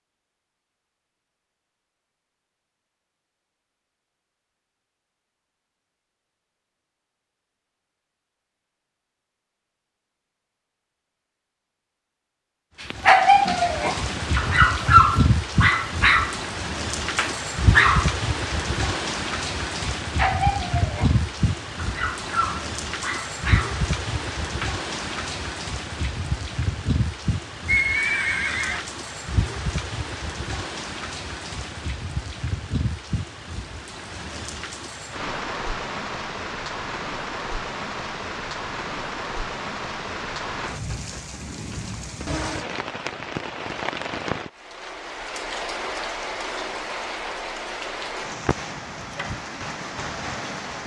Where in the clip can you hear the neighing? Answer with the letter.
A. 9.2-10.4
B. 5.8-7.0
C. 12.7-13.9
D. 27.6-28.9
D.